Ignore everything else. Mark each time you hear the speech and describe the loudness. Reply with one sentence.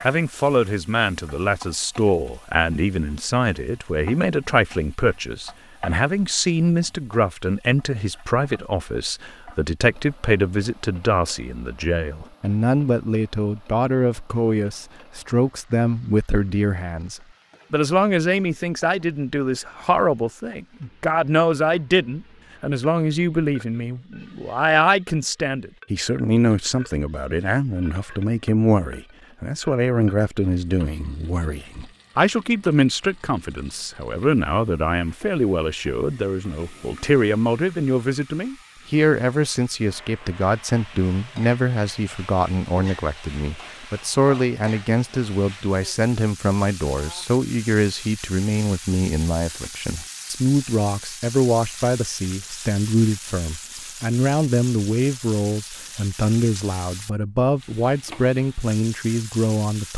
The speech can be heard from 0.0 to 59.9 s, at a steady volume.